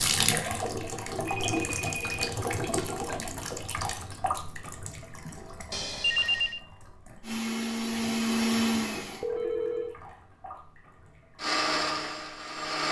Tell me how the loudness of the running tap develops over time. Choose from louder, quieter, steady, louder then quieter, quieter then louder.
quieter.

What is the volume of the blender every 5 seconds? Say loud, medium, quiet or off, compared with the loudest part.
off, loud, loud.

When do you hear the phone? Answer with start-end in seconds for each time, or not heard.
1.2-2.2, 5.7-6.6, 9.2-10.0.